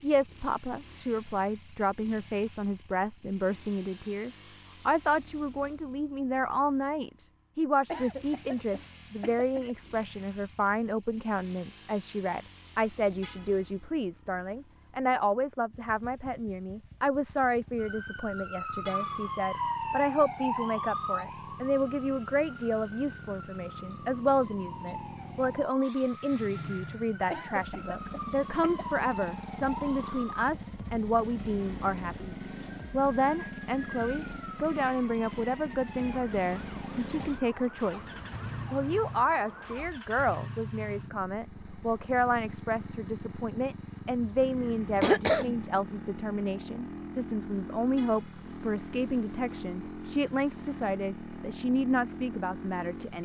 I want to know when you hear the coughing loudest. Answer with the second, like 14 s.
45 s.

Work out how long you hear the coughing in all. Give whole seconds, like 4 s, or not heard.
5 s.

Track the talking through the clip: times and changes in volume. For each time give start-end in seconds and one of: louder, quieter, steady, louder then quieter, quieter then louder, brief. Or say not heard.
0.0-53.2 steady.